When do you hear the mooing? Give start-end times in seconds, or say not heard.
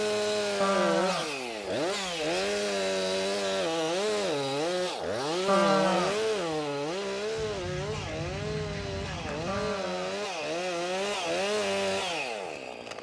0.6-1.2, 5.5-6.2, 9.4-10.2.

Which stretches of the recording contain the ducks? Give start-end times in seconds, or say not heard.
7.3-9.8.